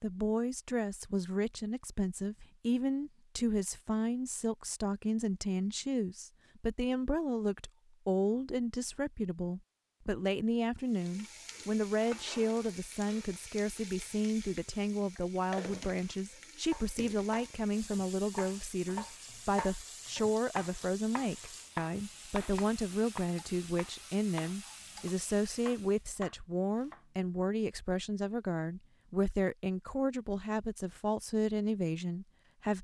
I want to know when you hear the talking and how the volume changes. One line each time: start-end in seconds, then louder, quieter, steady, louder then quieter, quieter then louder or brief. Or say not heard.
0.0-32.7 steady.